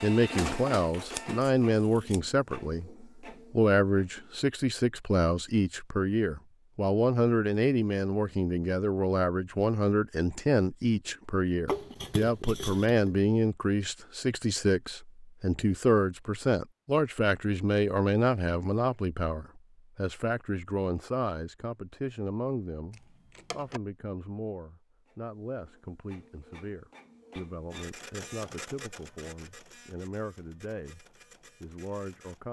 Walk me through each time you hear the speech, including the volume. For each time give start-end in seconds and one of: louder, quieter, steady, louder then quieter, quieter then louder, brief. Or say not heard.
0.0-32.4 quieter.